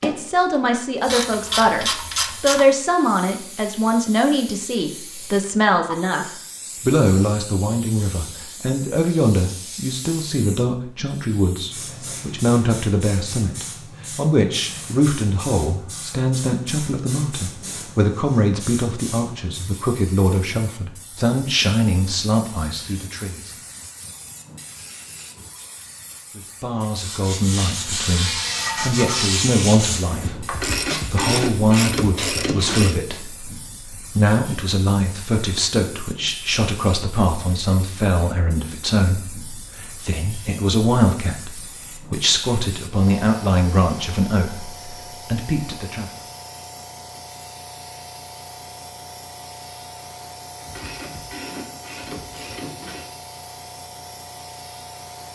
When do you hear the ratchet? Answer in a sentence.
The ratchet can be heard from 1.1 to 2.6 s, from 30.5 to 33.0 s and from 50.6 to 53.1 s.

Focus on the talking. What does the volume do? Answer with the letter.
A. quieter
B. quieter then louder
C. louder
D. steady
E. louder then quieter
D.